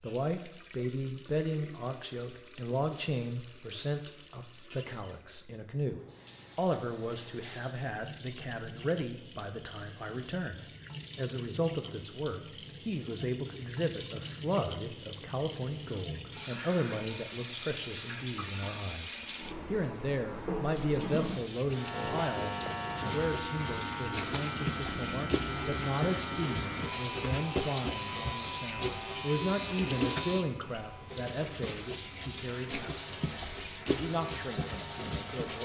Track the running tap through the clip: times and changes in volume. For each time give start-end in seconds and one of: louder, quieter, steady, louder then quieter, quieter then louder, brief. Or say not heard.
0.0-35.5 louder.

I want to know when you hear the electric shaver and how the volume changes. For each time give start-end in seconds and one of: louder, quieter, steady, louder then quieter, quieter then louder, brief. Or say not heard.
21.7-35.5 quieter.